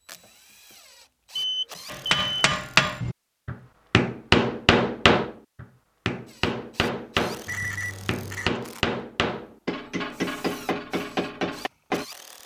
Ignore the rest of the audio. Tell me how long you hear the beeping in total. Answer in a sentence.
The beeping can be heard for 2 seconds in total.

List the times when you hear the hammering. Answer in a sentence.
The hammering can be heard from 1.9 to 12.1 s.